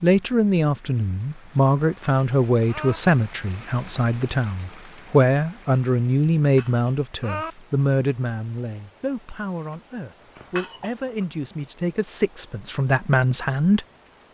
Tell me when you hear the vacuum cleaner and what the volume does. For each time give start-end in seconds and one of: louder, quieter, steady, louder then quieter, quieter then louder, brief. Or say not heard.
not heard.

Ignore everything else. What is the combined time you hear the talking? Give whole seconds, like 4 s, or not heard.
14 s.